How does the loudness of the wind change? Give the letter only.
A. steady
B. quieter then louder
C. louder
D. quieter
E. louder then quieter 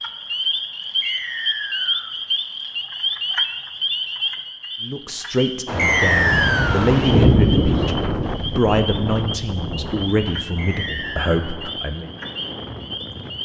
D.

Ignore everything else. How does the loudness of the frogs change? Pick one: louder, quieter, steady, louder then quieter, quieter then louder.
quieter.